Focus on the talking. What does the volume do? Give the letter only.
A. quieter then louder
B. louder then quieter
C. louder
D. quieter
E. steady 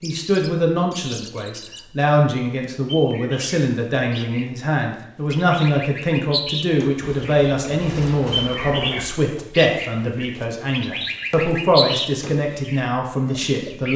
E.